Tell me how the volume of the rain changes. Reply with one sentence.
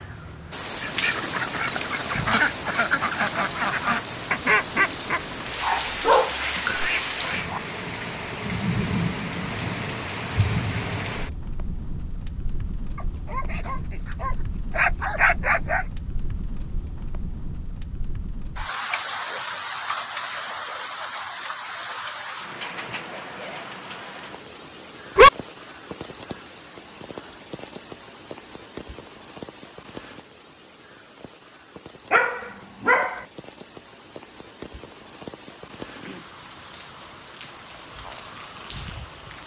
The loudness of the rain goes down.